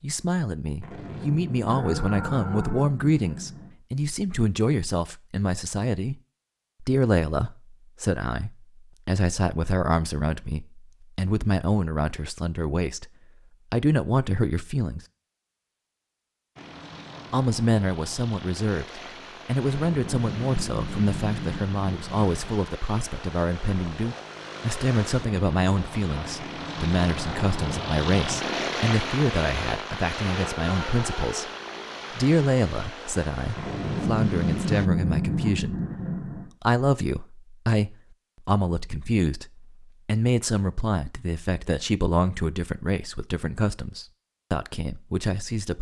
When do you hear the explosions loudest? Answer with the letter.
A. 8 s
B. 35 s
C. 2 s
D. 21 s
B.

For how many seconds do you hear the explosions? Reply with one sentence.
You can hear the explosions for 9 seconds altogether.